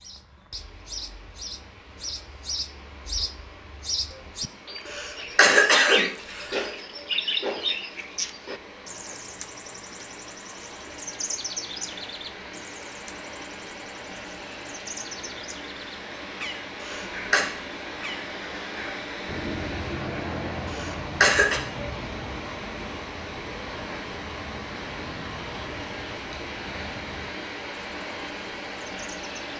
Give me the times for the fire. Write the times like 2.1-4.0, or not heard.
not heard.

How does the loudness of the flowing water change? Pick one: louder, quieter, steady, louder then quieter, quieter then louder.
louder.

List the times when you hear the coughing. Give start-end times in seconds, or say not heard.
4.8-6.7, 16.8-17.4, 20.6-21.6.